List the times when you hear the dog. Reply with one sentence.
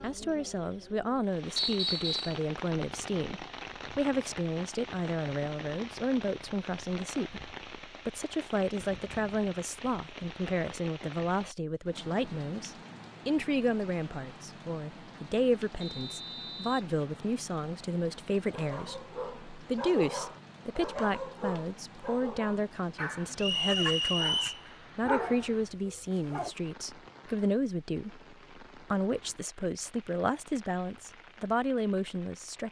You can hear the dog from 18.5 to 26.6 s.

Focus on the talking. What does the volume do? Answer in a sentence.
The loudness of the talking stays about the same.